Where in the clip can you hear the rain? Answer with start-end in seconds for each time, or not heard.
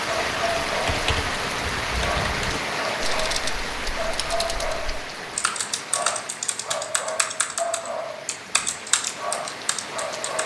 0.0-10.4.